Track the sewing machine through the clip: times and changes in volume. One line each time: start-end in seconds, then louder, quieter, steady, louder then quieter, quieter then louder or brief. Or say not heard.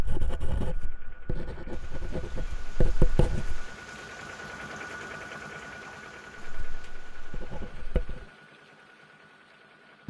0.0-10.0 louder then quieter.